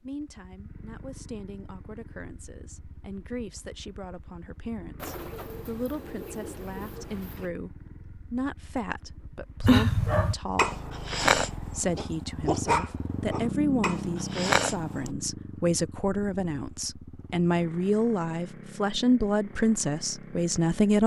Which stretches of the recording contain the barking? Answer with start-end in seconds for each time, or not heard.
9.6-15.1.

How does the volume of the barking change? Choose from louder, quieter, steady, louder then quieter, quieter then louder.
quieter then louder.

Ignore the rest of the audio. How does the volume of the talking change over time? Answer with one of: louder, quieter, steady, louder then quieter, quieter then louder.
louder.